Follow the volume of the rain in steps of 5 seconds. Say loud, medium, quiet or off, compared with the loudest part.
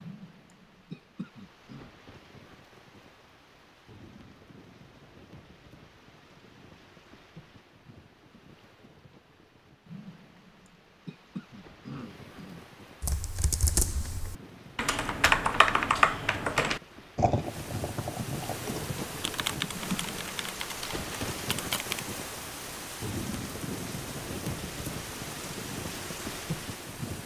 quiet, quiet, quiet, loud, loud, loud.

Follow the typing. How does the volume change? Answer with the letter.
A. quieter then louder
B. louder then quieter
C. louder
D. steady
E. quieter
B.